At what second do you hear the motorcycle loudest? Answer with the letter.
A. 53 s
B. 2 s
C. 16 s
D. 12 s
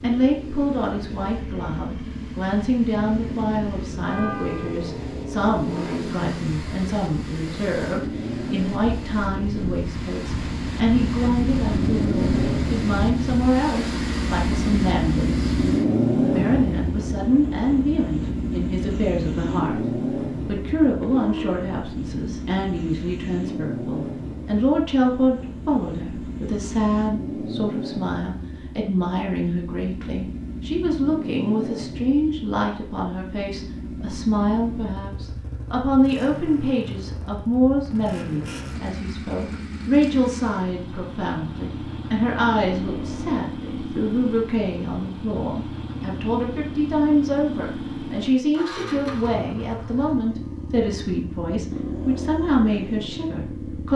C.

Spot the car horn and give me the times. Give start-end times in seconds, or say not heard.
4.0-4.8, 20.9-21.6, 42.6-43.4.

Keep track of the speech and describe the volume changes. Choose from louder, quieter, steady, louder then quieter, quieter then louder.
steady.